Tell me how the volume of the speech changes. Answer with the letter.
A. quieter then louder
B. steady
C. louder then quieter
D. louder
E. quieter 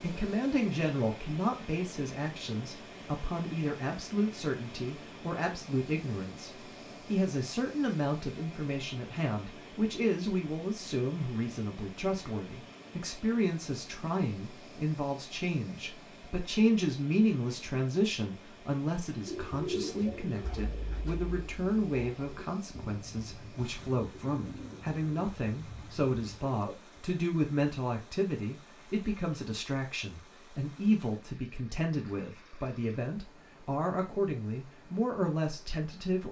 B.